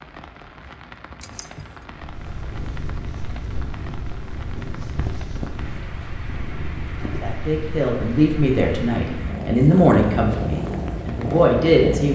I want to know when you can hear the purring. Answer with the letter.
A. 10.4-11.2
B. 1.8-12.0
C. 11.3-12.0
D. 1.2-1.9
B.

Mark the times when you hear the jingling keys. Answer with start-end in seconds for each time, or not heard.
1.2-1.9.